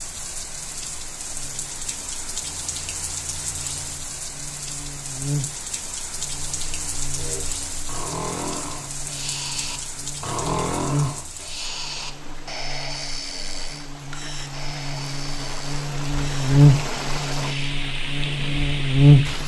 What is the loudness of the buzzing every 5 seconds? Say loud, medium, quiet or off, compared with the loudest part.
quiet, quiet, quiet, loud.